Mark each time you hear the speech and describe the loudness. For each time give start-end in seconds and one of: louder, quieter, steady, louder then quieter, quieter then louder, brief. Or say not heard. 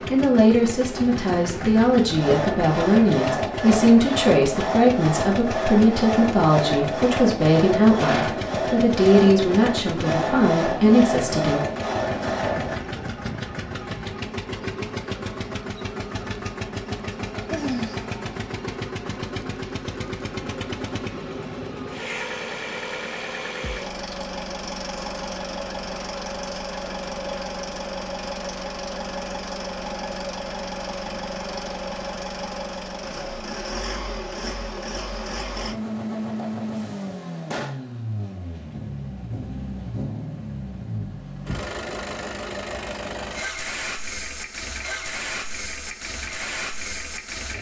0.1-11.6 steady.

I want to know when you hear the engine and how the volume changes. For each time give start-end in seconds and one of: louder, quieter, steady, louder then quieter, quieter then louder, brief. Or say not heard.
0.0-47.5 steady.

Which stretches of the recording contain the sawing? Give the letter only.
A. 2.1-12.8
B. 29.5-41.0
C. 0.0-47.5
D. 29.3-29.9
A.